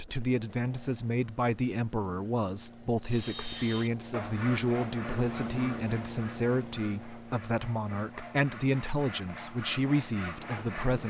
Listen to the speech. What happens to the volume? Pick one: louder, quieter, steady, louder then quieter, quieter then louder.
steady.